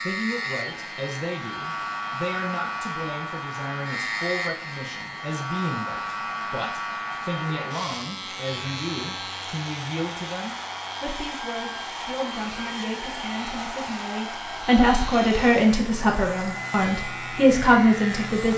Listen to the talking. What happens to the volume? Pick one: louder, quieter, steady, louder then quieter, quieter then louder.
louder.